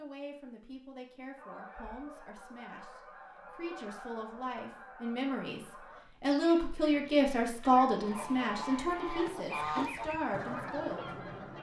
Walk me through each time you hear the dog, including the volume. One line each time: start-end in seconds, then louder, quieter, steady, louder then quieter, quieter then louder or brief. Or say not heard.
not heard.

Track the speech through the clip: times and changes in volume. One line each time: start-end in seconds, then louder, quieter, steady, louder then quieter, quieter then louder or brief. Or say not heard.
0.0-11.2 louder then quieter.